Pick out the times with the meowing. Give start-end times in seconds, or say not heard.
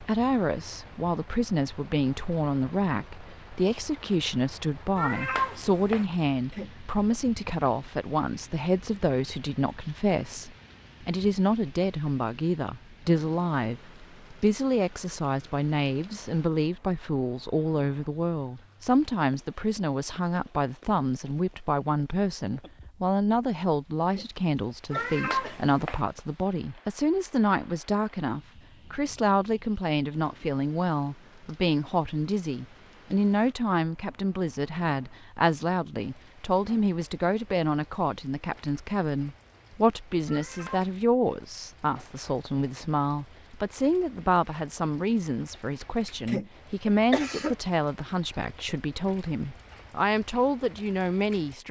5.0-6.0, 24.9-26.0, 40.2-40.9.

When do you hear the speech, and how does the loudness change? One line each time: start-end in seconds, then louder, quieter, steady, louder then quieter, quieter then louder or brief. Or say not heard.
0.0-51.6 steady.